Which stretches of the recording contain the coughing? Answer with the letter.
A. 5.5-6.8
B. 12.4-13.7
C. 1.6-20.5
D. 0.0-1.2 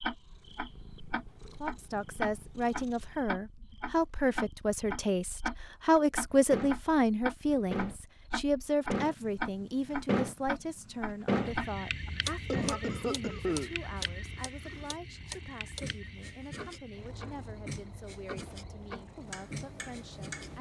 B.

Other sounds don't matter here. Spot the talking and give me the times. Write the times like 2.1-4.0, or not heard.
1.6-20.5.